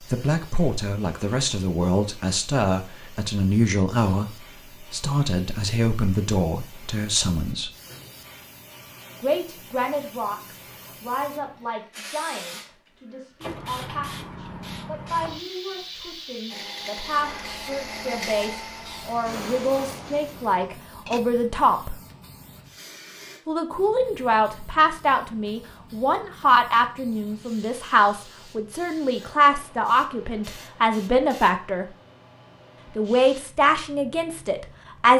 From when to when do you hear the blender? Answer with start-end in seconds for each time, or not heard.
16.5-21.2.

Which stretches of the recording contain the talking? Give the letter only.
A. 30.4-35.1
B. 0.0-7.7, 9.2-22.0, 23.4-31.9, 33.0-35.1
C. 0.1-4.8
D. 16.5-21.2
B.